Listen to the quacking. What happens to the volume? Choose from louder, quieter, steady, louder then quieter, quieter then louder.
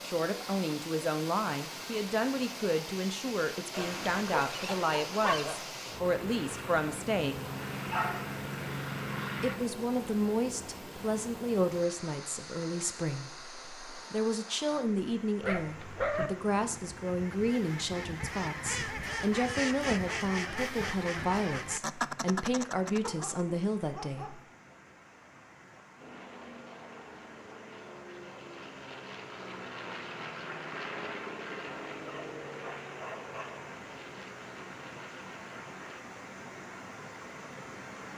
louder.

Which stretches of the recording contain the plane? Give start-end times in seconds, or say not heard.
6.0-9.6, 25.9-36.0.